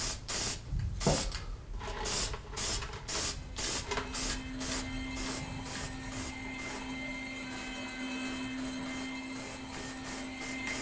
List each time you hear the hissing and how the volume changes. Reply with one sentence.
You can hear the hissing from 0.0 to 10.7 s, getting quieter.